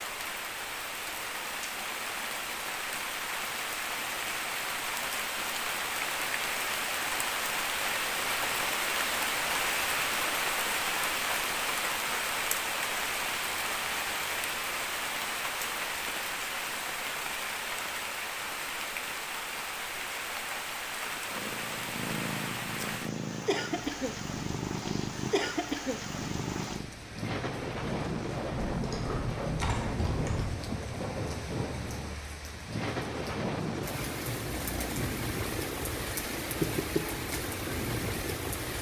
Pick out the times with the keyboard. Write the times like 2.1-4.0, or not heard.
28.7-30.4.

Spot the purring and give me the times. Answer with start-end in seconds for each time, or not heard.
21.2-26.9, 34.5-38.6.